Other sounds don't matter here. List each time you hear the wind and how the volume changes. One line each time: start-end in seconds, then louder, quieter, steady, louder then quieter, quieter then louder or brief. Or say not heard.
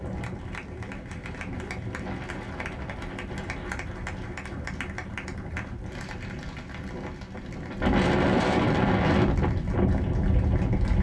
0.0-10.9 louder.